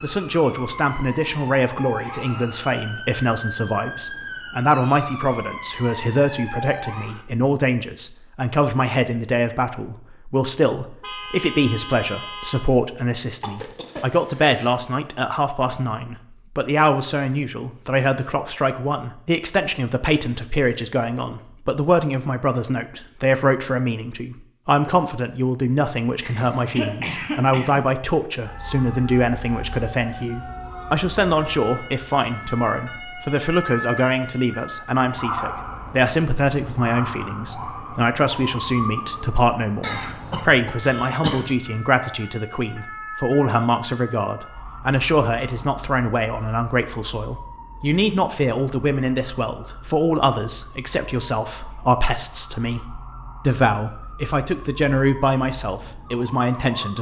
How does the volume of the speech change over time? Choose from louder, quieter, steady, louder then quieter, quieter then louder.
steady.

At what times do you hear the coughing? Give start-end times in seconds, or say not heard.
13.4-14.8, 26.2-27.9, 39.8-41.5.